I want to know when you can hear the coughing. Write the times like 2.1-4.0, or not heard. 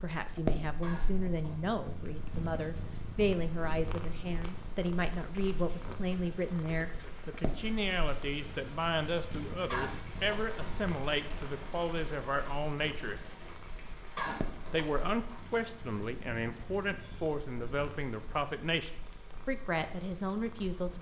0.8-1.6, 9.7-10.6, 14.2-15.1.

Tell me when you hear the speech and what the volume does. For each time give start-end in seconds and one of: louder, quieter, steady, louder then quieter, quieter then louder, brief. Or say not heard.
0.0-13.2 steady
14.7-20.9 steady.